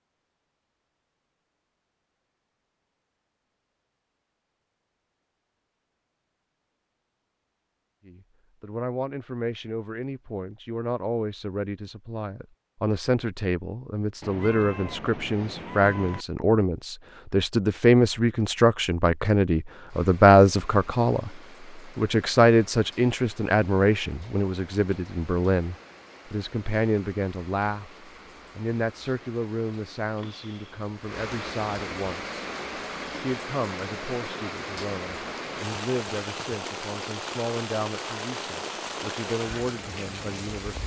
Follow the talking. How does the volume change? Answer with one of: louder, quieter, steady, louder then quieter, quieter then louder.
louder then quieter.